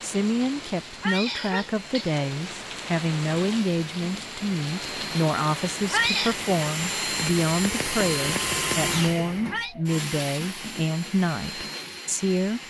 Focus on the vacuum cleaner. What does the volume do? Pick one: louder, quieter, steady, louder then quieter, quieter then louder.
louder then quieter.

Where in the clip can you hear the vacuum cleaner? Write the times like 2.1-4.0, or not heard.
0.0-12.6.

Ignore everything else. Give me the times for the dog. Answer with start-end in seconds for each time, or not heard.
not heard.